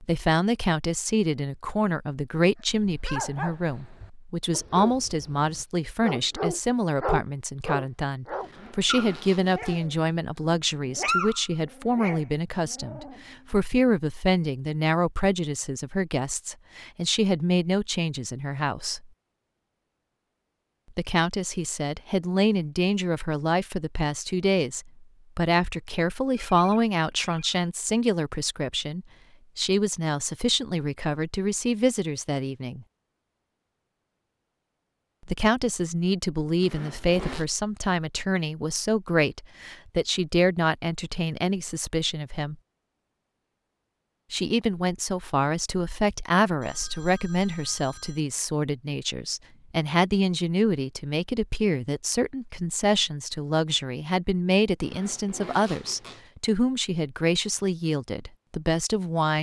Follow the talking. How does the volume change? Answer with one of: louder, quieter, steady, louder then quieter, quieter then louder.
steady.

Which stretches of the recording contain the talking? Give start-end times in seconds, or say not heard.
0.0-19.1, 20.9-32.9, 35.2-42.5, 44.3-59.3.